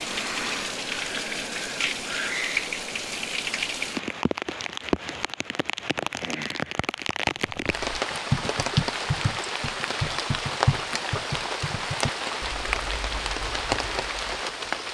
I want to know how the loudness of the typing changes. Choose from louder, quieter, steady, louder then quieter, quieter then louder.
quieter.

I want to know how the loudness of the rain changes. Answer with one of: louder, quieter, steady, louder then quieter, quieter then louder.
steady.